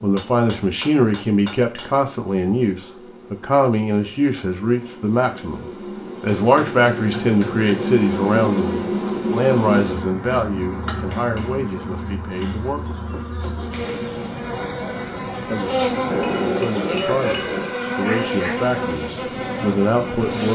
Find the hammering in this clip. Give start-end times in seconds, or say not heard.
0.1-2.0, 6.4-7.9, 10.9-12.6, 16.1-17.8.